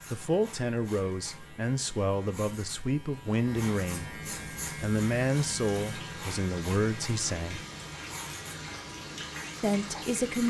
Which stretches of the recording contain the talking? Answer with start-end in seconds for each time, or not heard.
0.1-7.7, 9.6-10.4.